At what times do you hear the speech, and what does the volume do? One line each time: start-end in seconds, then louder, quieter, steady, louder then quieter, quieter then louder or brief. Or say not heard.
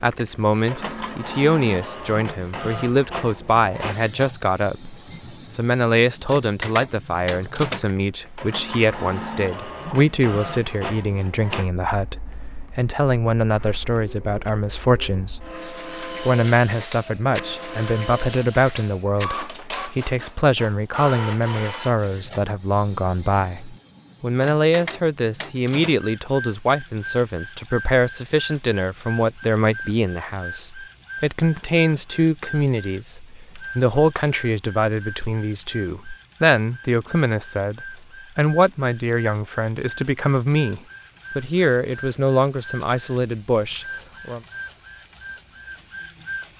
0.0-44.4 steady.